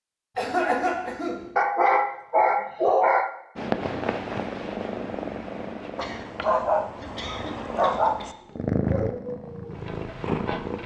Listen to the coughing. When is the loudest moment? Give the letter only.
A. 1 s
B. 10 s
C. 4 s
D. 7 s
A.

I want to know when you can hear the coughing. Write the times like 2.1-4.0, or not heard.
0.3-1.5, 6.0-8.4.